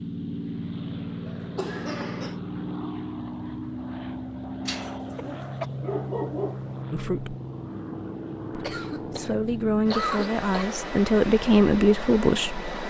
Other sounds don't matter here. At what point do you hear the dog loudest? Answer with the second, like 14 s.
6 s.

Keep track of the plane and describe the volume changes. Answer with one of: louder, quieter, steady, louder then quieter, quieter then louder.
steady.